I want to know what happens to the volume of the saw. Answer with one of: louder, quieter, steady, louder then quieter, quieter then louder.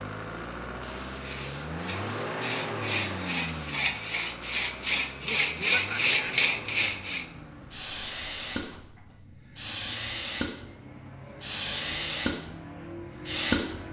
louder.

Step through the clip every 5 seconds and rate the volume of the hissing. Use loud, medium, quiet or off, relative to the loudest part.
quiet, medium, loud.